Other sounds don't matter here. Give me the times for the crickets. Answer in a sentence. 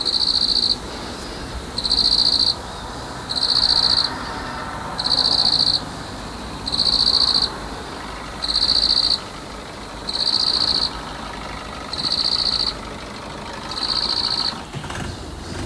The crickets can be heard from 0.0 to 15.6 s.